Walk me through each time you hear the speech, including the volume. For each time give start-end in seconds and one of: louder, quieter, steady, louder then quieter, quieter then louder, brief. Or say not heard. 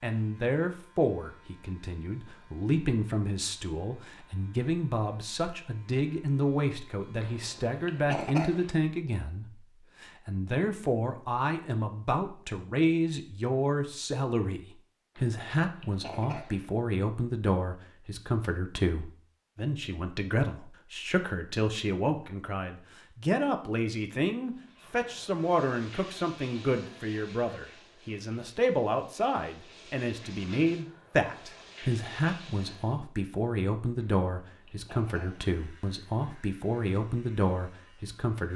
0.0-38.5 steady.